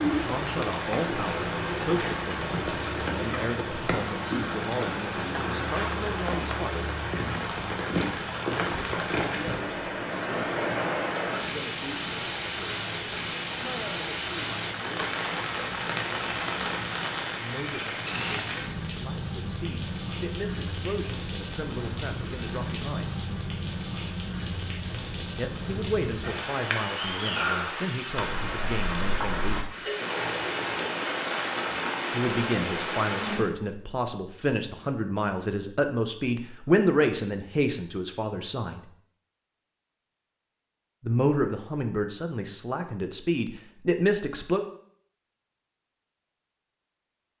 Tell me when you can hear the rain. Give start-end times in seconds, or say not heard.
0.0-33.5.